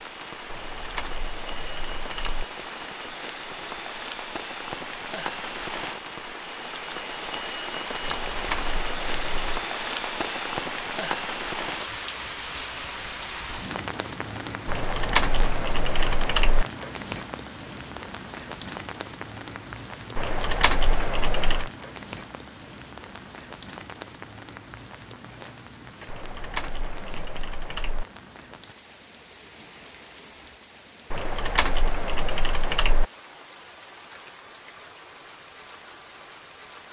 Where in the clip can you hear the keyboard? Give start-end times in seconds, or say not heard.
0.5-2.5, 8.0-9.6, 14.7-16.6, 20.1-21.7, 26.1-28.1, 31.1-33.0.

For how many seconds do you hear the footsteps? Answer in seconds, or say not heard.
not heard.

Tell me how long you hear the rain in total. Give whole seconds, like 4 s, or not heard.
37 s.